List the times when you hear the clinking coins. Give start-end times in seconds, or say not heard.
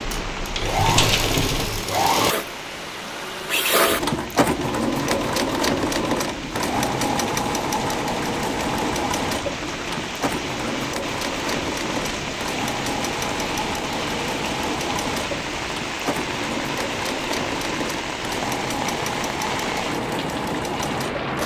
0.1-1.6.